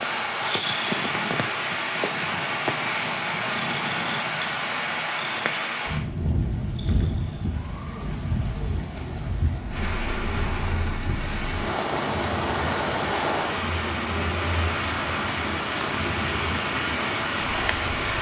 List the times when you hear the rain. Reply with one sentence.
The rain can be heard from 0.0 to 18.1 s.